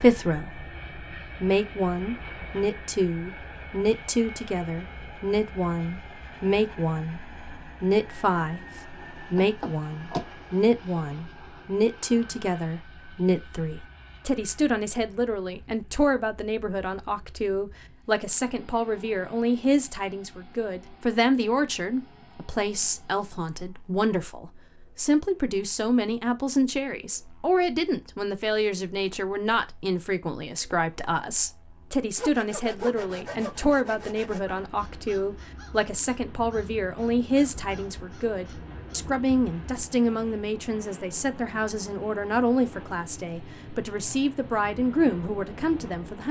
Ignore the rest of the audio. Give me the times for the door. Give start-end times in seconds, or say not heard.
9.3-10.2, 33.5-34.1.